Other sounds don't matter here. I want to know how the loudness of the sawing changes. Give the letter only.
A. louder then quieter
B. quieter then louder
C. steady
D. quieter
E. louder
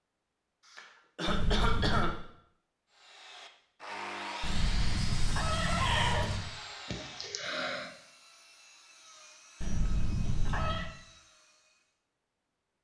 D.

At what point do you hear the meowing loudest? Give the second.
6 s.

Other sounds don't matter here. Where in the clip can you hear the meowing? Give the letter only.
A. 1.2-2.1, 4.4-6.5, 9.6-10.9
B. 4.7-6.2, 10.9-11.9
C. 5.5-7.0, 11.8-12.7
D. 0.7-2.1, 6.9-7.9
A.